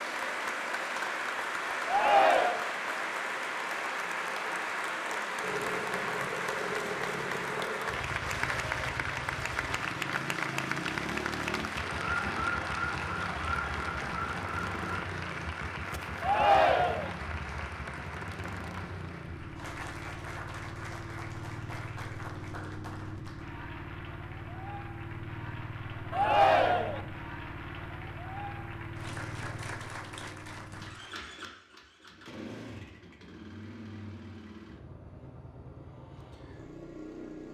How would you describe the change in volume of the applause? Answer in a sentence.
The loudness of the applause goes down.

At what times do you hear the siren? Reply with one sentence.
You can hear the siren from 11.9 to 15.0 s.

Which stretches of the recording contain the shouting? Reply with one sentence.
You can hear the shouting from 1.9 to 2.6 s, from 16.2 to 17.1 s and from 26.1 to 27.0 s.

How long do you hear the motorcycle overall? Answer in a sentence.
You can hear the motorcycle for 32 seconds altogether.